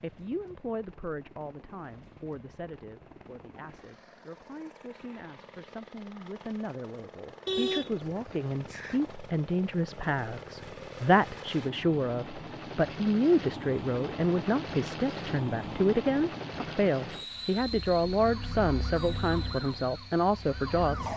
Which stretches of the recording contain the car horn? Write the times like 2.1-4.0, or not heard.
7.5-9.2.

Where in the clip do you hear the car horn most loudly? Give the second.
8 s.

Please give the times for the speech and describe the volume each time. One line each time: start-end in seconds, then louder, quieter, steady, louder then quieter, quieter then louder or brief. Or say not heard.
0.0-21.1 louder.